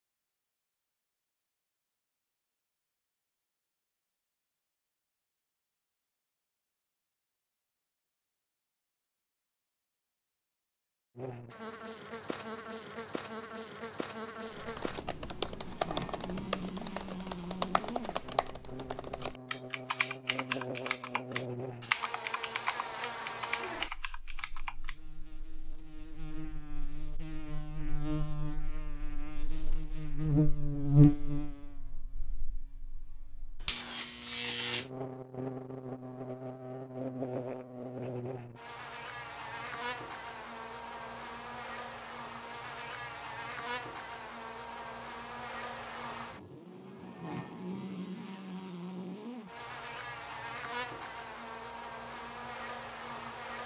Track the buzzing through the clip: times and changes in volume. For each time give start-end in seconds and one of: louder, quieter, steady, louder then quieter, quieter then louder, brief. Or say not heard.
11.2-53.6 louder then quieter.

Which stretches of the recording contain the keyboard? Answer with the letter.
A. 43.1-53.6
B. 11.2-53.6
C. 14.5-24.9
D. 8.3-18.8
C.